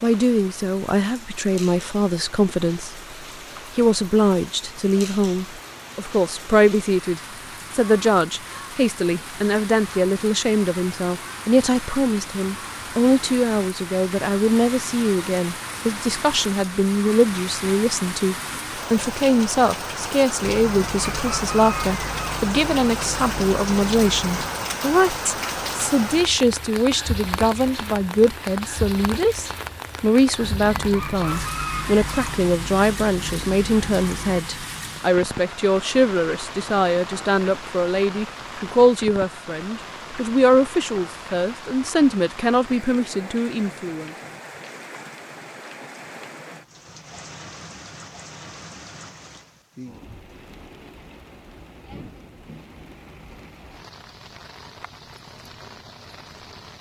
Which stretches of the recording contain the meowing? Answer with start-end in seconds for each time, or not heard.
not heard.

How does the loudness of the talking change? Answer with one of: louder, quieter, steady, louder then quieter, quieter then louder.
steady.